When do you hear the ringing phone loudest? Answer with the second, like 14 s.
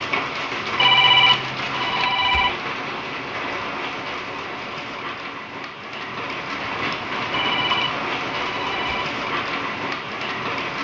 1 s.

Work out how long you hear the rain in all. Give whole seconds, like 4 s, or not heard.
11 s.